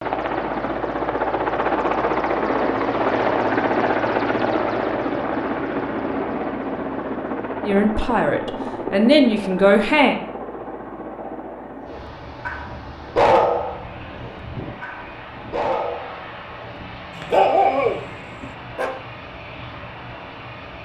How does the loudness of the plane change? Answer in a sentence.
The loudness of the plane goes down.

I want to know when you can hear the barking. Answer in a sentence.
The barking can be heard from 11.9 to 16.2 s and from 17.1 to 18.9 s.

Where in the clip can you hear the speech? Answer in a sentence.
The speech can be heard from 7.7 to 10.2 s.